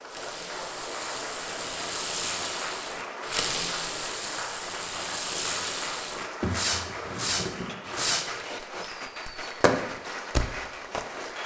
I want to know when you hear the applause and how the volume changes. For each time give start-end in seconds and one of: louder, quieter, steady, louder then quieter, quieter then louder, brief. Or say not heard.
0.0-11.4 steady.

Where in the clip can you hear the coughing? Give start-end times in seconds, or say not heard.
6.4-7.8.